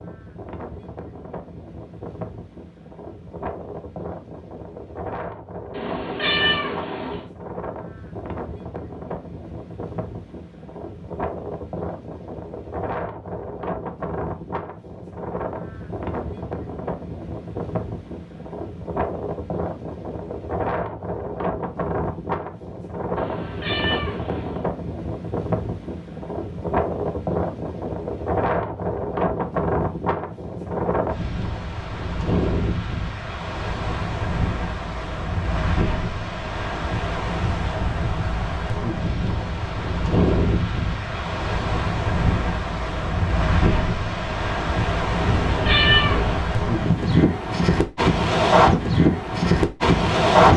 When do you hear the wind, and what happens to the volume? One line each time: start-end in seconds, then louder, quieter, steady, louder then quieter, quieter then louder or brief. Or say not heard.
0.0-50.5 louder.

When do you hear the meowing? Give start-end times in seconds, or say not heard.
5.7-7.2, 23.1-24.6, 45.2-46.5.